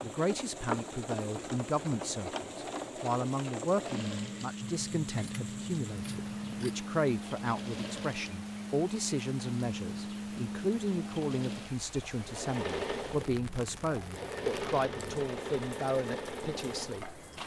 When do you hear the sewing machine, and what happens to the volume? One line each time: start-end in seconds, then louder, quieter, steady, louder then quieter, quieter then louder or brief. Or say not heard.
0.0-17.4 steady.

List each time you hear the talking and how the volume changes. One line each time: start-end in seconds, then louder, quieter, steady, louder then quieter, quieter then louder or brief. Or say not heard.
0.0-17.2 steady.